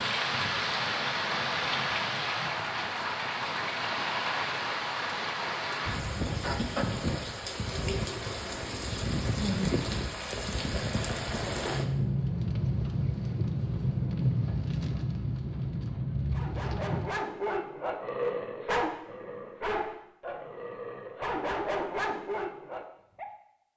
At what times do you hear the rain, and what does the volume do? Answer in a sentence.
The rain can be heard from 0.0 to 17.1 s, at a steady volume.